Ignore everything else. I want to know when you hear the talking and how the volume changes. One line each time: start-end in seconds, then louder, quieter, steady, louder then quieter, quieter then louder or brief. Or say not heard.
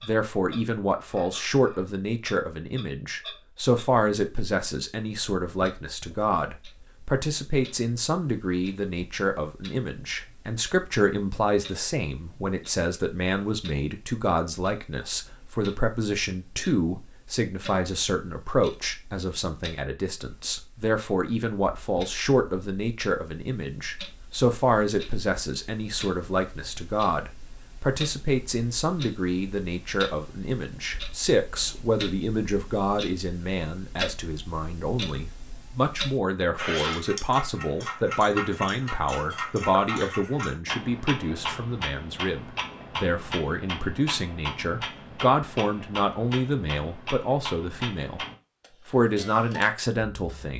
0.0-48.2 steady
48.9-50.5 brief.